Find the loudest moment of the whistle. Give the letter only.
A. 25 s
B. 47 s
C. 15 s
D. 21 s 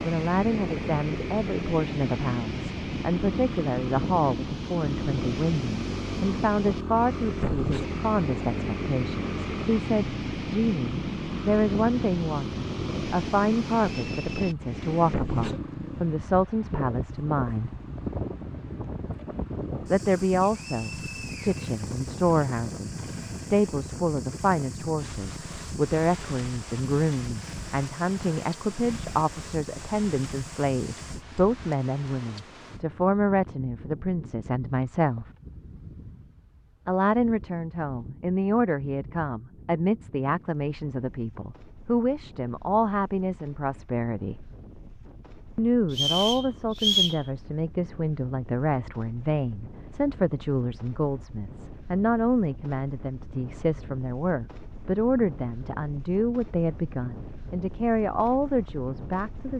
B.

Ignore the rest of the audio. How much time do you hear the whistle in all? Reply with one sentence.
You can hear the whistle for 3 seconds altogether.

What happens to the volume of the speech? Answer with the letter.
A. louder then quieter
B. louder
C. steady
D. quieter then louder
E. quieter
C.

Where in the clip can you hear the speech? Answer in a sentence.
You can hear the speech from 0.0 to 17.8 s, from 19.9 to 35.2 s, from 36.9 to 44.4 s and from 45.5 to 59.5 s.